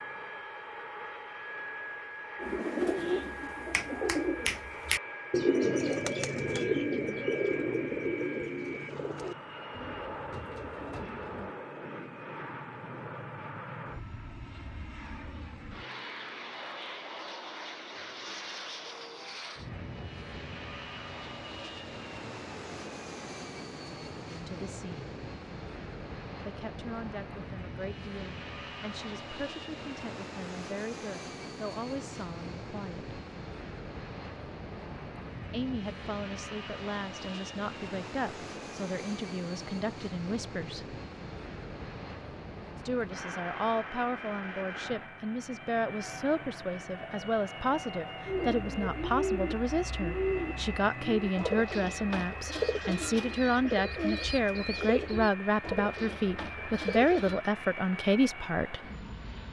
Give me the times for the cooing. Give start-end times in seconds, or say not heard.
2.4-11.6, 48.2-57.4.